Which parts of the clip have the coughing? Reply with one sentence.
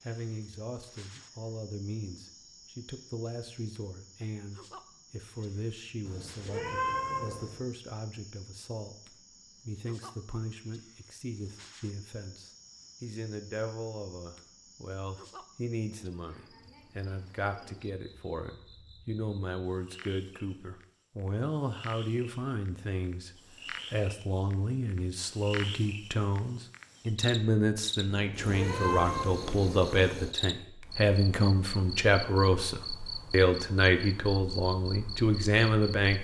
The coughing can't be heard in this clip.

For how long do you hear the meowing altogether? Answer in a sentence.
The meowing can be heard for 3 seconds in total.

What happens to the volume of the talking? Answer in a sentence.
The volume of the talking goes up.